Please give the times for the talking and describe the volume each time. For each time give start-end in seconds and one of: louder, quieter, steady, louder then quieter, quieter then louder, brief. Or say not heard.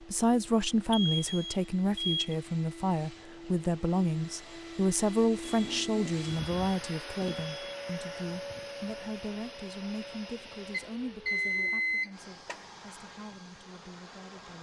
0.0-14.5 quieter.